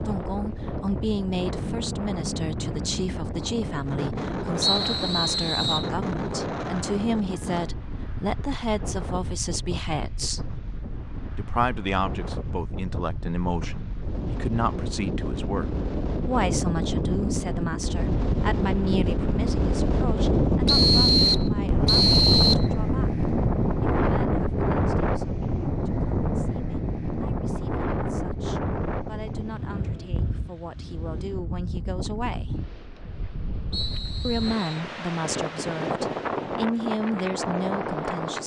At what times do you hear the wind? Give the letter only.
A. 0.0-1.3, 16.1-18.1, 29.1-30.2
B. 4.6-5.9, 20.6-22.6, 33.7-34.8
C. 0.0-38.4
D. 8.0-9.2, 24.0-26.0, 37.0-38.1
C.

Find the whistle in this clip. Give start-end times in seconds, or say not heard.
4.6-5.9, 20.6-22.6, 33.7-34.8.